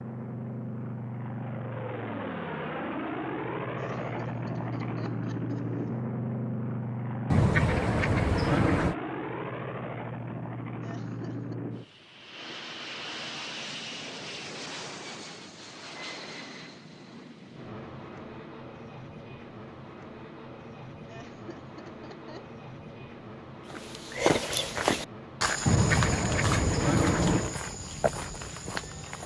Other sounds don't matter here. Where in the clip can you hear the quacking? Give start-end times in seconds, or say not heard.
7.3-8.9, 25.6-27.6.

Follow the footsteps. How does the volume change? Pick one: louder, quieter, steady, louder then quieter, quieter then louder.
quieter.